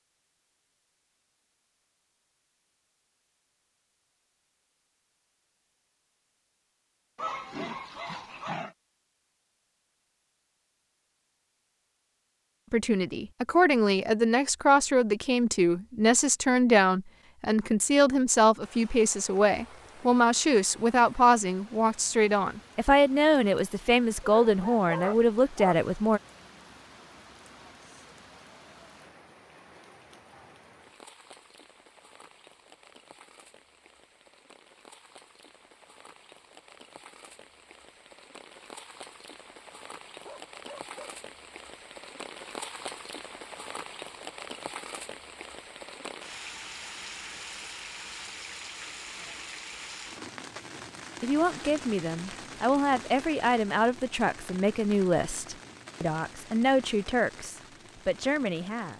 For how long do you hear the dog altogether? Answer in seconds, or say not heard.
4 s.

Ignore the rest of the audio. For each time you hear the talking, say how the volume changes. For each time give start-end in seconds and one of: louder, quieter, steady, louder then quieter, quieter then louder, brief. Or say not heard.
12.7-26.2 steady
51.2-58.9 steady.